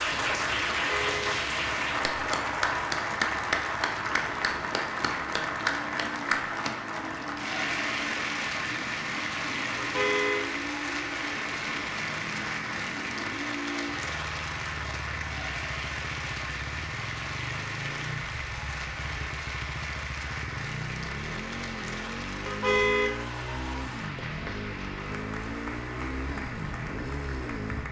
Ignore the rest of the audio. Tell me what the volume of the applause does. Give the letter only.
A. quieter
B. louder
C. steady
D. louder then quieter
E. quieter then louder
A.